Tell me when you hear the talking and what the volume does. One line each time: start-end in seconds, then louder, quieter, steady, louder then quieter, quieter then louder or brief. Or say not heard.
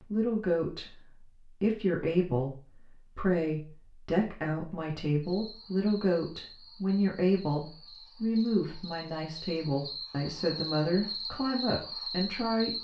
0.0-12.7 steady.